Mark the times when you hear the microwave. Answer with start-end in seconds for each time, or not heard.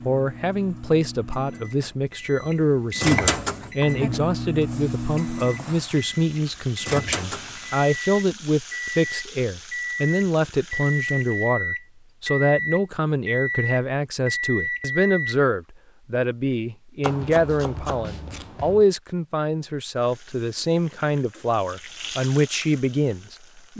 0.0-15.4.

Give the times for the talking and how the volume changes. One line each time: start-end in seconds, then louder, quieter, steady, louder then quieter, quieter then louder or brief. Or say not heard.
0.1-23.7 steady.